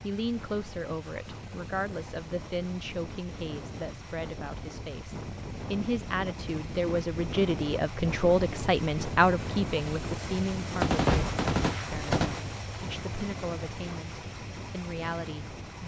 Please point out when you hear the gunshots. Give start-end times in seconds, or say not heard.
10.8-12.4.